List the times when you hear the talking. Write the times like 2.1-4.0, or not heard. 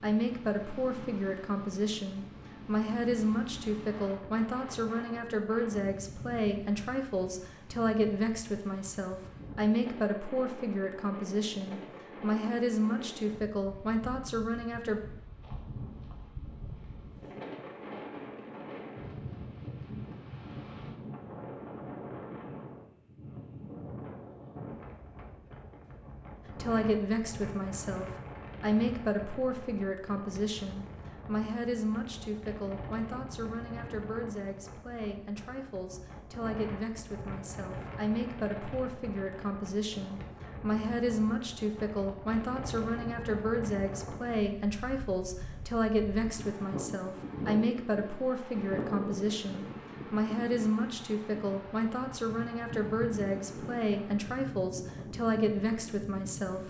0.0-15.0, 26.6-56.6.